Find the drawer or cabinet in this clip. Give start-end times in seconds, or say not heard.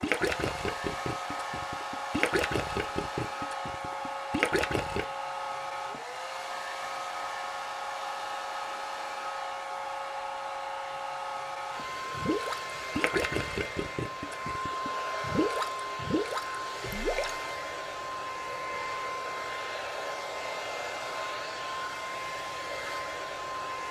not heard.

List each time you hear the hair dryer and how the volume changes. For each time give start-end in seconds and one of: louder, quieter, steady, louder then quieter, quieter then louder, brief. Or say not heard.
0.0-23.8 steady.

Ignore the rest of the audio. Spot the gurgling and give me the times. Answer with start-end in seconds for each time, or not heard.
0.0-5.0, 12.1-17.3.